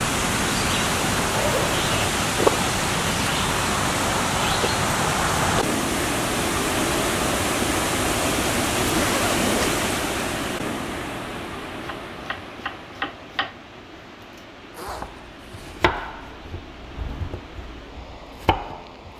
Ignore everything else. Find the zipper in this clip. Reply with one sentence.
The zipper can be heard from 1.1 to 2.1 s, from 8.8 to 9.8 s and from 14.7 to 15.8 s.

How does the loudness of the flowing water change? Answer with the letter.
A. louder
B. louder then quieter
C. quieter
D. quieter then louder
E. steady
C.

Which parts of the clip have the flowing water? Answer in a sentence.
You can hear the flowing water from 0.0 to 19.1 s.